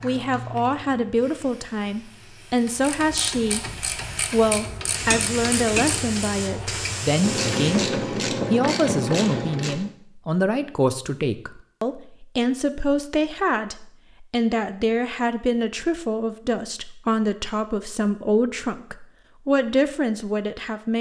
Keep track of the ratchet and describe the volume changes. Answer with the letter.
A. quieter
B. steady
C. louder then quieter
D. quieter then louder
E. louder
E.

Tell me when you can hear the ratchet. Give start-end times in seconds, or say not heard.
2.5-9.9.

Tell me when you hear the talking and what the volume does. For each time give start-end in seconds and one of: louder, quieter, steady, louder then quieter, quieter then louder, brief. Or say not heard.
0.0-20.9 steady.